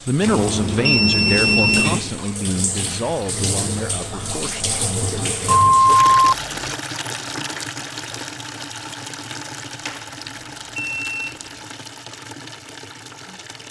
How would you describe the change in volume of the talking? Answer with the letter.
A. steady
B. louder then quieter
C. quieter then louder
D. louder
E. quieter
E.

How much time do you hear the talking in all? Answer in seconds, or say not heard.
6 s.